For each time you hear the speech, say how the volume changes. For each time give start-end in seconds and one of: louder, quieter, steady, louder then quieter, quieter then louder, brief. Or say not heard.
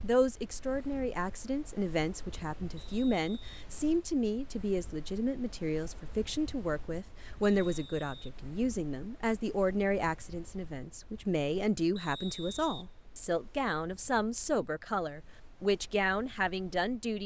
0.0-17.2 steady.